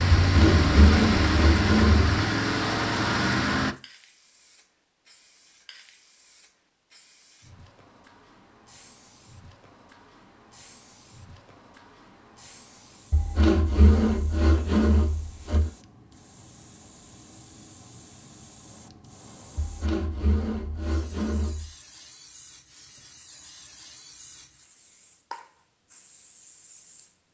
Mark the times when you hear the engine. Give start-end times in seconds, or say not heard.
0.0-3.8.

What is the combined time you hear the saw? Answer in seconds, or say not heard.
7 s.